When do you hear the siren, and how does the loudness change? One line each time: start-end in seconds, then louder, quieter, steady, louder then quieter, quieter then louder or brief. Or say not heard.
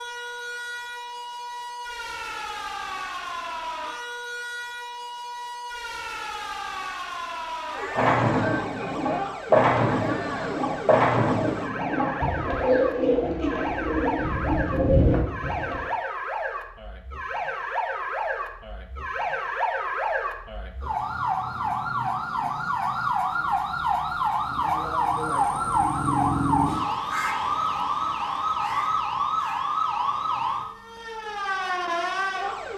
0.0-32.7 louder.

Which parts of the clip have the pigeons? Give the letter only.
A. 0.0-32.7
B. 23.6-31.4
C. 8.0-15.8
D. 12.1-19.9
C.